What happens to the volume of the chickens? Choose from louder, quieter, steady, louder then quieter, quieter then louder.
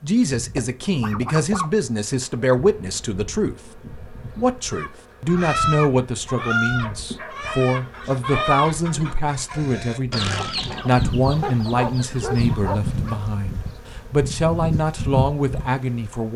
quieter.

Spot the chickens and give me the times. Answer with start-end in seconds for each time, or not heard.
4.7-12.7.